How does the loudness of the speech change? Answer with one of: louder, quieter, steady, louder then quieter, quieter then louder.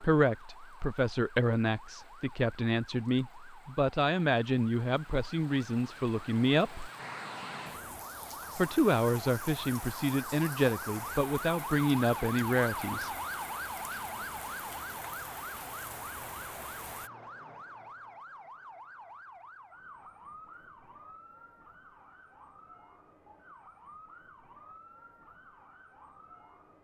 steady.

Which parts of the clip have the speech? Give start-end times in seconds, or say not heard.
0.0-6.8, 8.6-13.1.